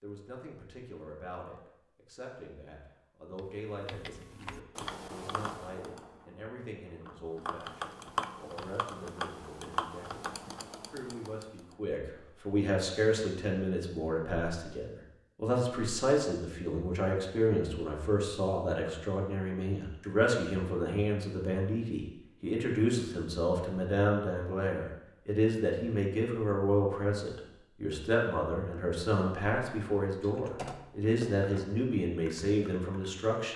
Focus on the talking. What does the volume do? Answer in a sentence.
The loudness of the talking goes up.